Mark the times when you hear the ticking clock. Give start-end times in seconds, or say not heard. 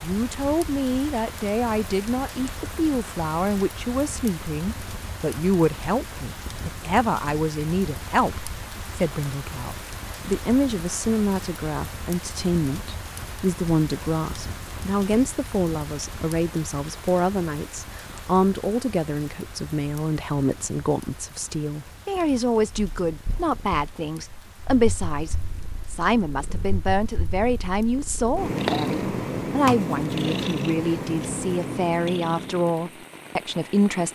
not heard.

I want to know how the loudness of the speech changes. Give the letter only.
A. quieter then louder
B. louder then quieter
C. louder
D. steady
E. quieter
D.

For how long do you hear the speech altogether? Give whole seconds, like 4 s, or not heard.
34 s.